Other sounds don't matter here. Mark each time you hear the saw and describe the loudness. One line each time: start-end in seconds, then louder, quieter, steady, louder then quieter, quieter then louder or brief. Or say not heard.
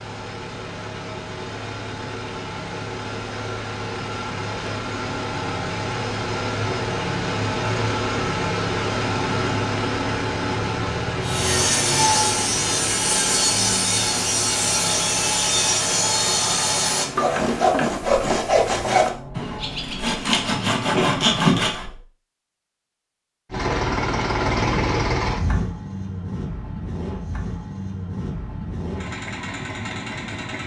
11.2-21.9 steady.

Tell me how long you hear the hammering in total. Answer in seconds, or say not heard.
not heard.